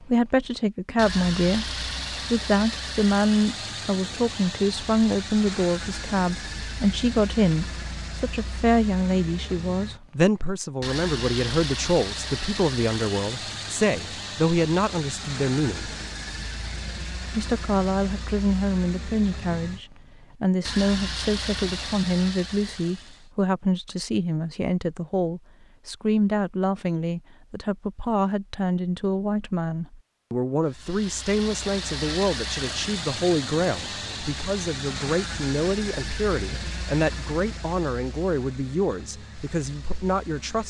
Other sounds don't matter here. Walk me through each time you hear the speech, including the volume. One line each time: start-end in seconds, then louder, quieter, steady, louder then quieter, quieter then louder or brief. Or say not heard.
0.0-15.9 steady
17.3-40.6 steady.